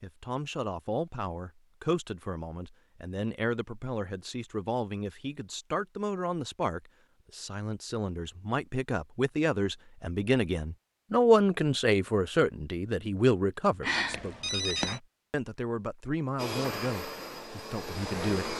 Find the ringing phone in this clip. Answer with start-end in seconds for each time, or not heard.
13.8-15.0.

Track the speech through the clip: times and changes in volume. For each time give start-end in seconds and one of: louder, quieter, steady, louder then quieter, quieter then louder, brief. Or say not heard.
0.0-18.5 louder then quieter.